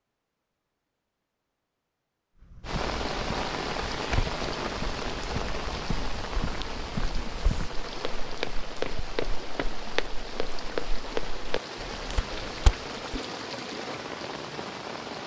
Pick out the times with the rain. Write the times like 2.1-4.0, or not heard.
2.6-15.2.